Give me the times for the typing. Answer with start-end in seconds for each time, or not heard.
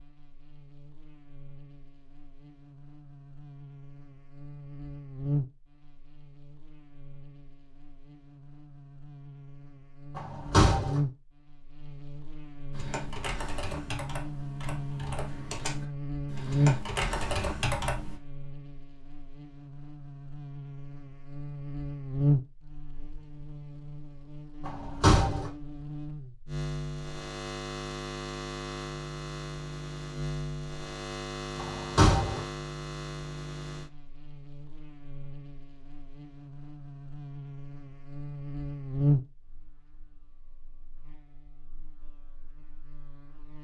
12.7-18.2.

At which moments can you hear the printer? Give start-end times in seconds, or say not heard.
not heard.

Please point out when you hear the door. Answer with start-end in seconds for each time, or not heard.
10.2-11.0, 24.6-25.5, 31.6-32.5.